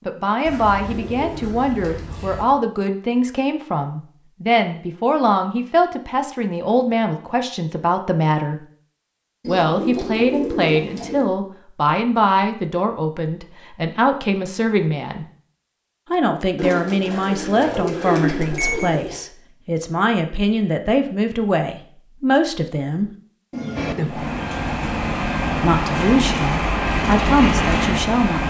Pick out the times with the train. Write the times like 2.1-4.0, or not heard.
23.8-28.4.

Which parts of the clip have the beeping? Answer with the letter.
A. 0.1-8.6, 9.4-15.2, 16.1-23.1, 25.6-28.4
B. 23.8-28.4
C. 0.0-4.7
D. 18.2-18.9
D.